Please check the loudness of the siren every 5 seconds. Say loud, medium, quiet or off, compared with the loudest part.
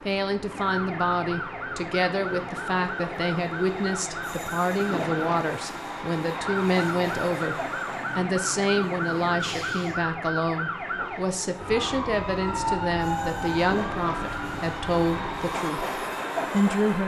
loud, loud, loud, medium.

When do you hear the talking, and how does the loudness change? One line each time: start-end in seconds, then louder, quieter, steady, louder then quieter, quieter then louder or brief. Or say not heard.
0.1-7.5 steady
8.2-17.0 steady.